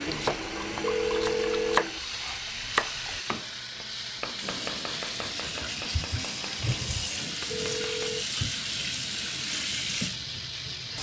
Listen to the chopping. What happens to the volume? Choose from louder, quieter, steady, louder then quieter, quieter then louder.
quieter.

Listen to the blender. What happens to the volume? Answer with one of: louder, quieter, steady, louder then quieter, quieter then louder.
steady.